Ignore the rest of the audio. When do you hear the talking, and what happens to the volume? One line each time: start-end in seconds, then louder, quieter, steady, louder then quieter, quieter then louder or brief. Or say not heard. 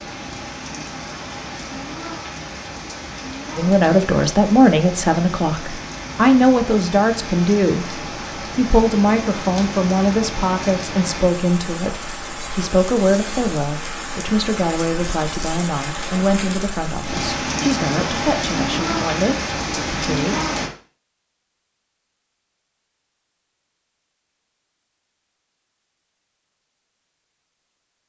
3.5-20.4 quieter.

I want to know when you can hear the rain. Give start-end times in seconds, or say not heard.
0.0-20.7.